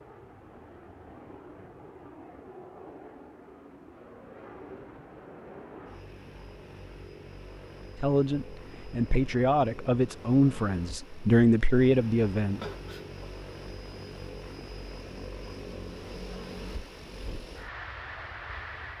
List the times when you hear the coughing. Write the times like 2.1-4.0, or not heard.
12.6-13.2.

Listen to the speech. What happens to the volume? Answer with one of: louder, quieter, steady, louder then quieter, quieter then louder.
louder.